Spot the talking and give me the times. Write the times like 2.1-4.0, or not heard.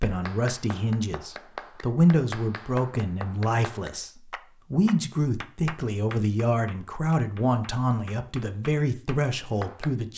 0.0-10.1.